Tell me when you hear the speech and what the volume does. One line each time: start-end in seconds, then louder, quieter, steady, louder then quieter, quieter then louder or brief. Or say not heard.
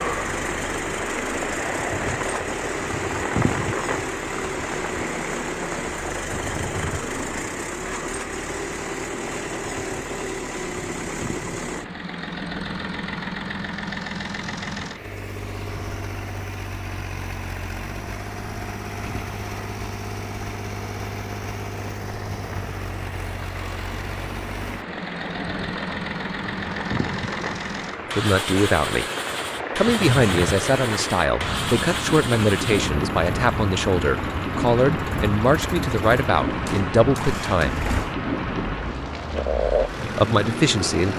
28.1-29.1 brief
29.8-37.9 steady
40.0-41.1 brief.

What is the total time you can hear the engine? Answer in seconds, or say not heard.
41 s.